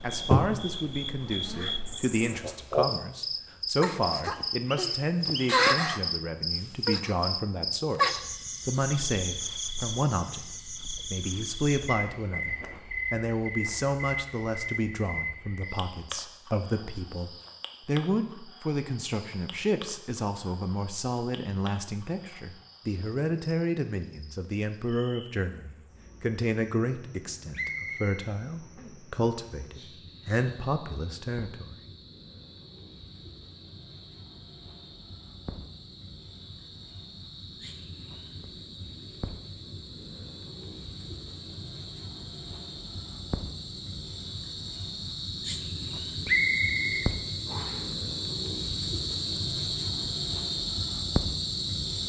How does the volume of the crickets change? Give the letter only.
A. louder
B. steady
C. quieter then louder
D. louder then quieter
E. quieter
C.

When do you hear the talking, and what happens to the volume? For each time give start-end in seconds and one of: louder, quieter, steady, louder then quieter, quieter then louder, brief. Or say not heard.
0.0-31.8 steady.